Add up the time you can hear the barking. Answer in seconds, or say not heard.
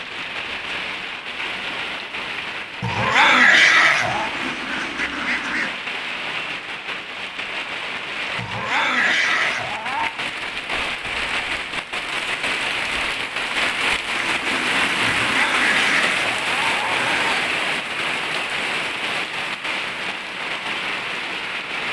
6 s.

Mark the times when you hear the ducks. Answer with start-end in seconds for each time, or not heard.
4.0-5.8, 14.2-16.0.